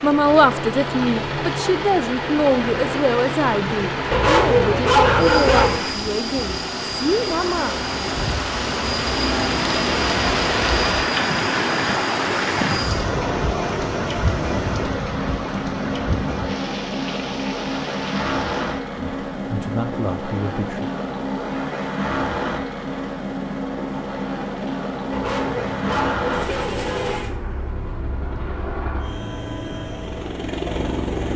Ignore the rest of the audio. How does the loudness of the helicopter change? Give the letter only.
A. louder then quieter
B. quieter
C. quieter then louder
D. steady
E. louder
D.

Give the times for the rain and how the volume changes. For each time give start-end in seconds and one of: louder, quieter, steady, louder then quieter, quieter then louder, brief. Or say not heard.
0.0-18.9 louder then quieter.